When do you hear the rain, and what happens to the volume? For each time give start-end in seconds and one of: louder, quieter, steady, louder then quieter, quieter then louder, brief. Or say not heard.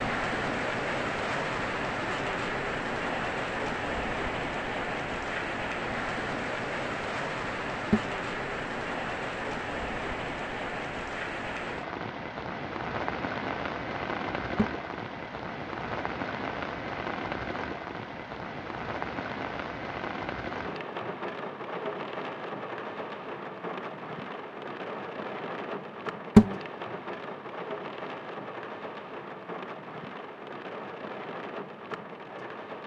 0.0-32.8 quieter.